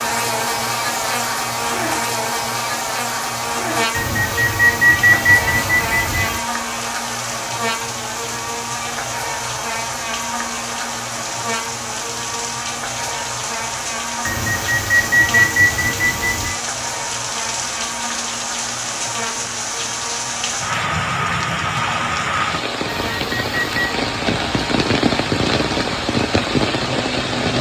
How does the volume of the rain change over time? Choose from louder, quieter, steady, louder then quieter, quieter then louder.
louder.